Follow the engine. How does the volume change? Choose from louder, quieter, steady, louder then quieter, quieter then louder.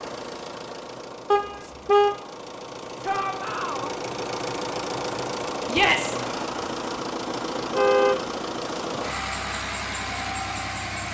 louder.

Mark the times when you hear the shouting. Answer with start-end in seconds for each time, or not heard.
3.0-3.9, 5.7-6.2.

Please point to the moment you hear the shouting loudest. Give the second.
6 s.